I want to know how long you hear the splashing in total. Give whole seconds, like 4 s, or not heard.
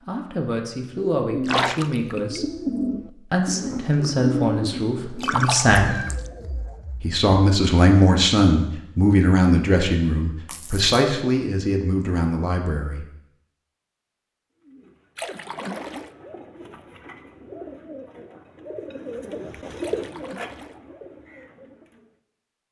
4 s.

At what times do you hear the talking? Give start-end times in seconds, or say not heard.
0.1-6.0, 7.0-13.1.